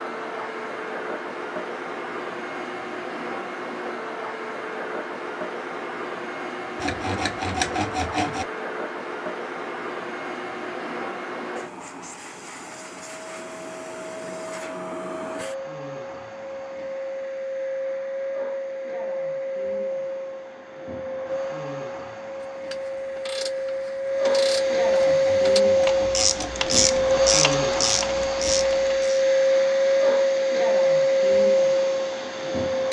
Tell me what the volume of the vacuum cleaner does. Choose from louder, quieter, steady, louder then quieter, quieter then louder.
louder.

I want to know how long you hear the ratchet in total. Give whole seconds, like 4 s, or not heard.
7 s.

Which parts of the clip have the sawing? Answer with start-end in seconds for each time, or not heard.
6.8-8.4, 25.0-26.6.